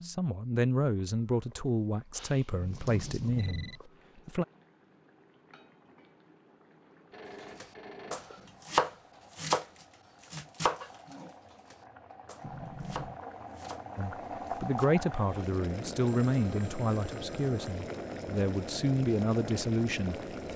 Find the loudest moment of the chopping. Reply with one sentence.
The loudest moment of the chopping is at 9 seconds.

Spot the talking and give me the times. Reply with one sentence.
The talking can be heard from 0.0 to 4.5 s and from 13.9 to 20.5 s.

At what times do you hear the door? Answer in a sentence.
The door can be heard from 2.5 to 3.8 s and from 12.4 to 13.2 s.